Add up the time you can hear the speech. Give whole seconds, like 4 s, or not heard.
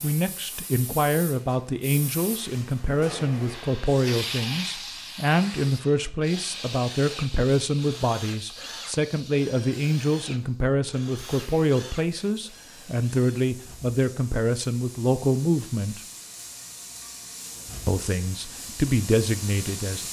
18 s.